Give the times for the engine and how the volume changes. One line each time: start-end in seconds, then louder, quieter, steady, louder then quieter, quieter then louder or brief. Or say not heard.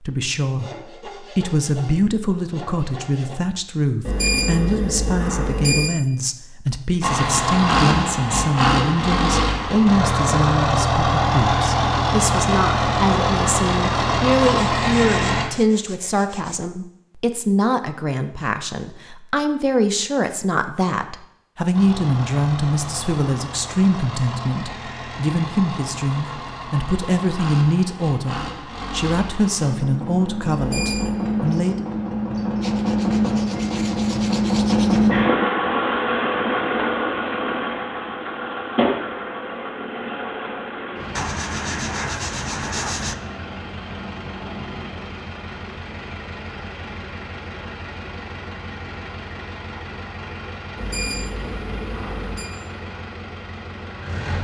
7.0-15.4 steady
21.7-54.3 louder then quieter.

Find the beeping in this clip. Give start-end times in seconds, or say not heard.
4.0-6.0, 30.6-31.2, 50.8-52.5.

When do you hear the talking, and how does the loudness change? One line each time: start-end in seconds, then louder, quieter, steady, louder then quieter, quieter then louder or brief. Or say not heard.
0.0-31.9 steady.